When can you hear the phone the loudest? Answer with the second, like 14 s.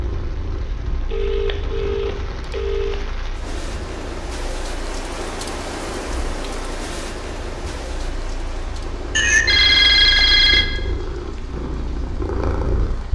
10 s.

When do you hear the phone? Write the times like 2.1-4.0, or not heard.
1.1-3.0, 9.2-10.7.